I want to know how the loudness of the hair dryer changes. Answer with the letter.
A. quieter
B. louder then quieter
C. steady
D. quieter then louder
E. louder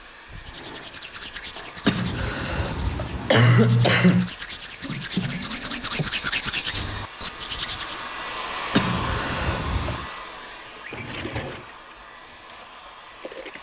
B.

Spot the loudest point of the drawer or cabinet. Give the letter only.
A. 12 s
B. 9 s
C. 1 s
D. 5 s
D.